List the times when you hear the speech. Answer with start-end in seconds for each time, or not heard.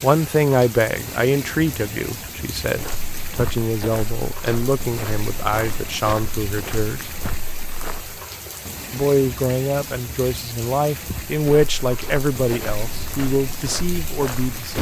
0.0-7.1, 8.9-14.7.